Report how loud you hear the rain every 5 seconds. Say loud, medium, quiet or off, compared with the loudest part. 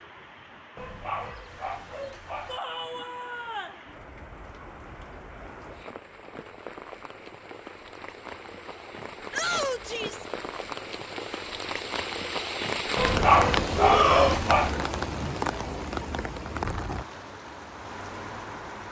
quiet, medium, loud, loud.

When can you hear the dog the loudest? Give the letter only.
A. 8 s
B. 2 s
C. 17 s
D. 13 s
D.